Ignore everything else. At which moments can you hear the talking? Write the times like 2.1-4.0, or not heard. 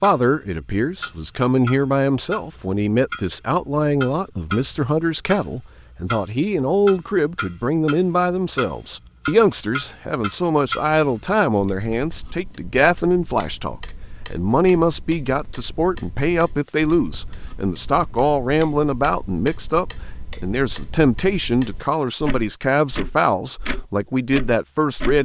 0.0-25.2.